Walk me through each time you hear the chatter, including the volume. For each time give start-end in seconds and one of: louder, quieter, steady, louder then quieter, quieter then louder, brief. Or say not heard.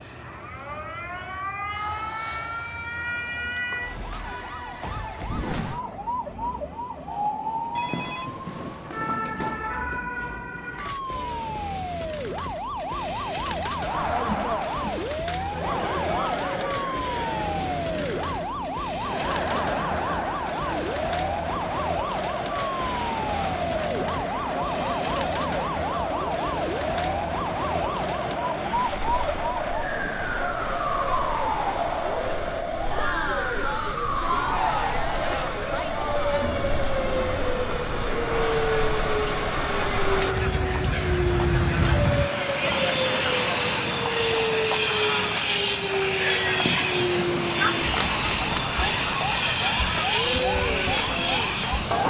13.7-52.0 steady.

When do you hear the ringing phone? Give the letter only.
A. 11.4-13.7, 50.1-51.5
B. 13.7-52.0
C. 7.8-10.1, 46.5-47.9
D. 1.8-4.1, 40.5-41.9
C.